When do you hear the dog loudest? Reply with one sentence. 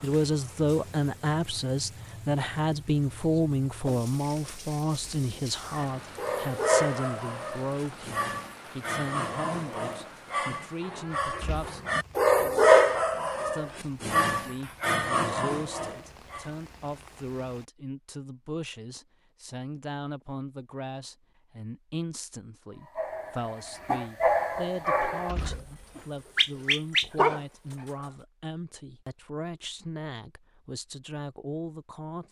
The volume of the dog peaks at 13 seconds.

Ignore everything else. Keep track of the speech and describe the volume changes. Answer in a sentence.
The volume of the speech goes down.